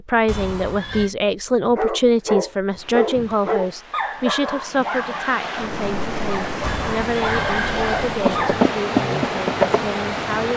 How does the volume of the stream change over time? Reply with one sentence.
The volume of the stream goes up.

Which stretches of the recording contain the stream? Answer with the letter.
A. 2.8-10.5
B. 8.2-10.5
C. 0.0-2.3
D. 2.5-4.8
A.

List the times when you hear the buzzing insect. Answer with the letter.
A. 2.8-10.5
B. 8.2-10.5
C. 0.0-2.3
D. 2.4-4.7
B.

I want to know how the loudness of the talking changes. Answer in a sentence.
The volume of the talking goes down.